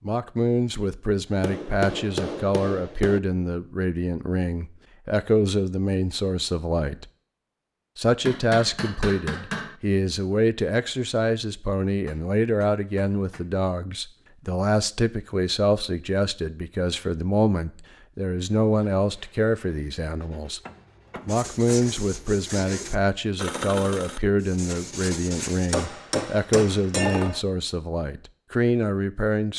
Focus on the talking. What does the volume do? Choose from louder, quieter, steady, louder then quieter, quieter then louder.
steady.